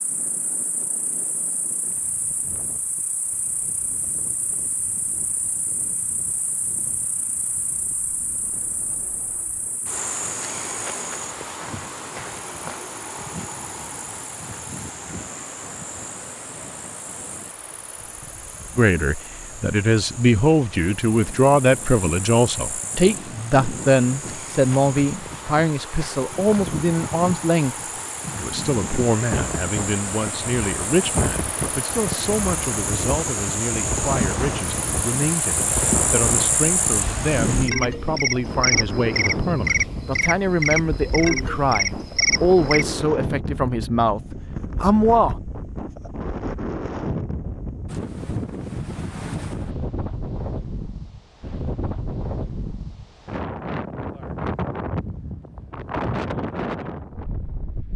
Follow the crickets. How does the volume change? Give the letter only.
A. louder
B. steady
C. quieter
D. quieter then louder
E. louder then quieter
A.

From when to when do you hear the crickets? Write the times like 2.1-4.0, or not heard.
0.0-42.9.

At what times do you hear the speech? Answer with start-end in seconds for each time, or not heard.
18.8-27.8, 28.4-45.4.